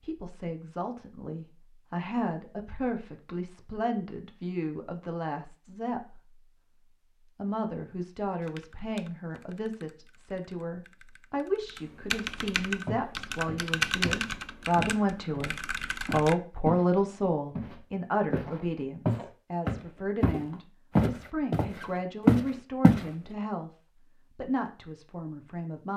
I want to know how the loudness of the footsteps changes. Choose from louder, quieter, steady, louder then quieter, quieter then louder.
louder.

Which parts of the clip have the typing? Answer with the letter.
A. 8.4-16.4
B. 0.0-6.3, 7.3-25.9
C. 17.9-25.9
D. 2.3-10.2
A.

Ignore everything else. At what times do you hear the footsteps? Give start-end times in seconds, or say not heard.
12.8-16.9, 17.6-23.1.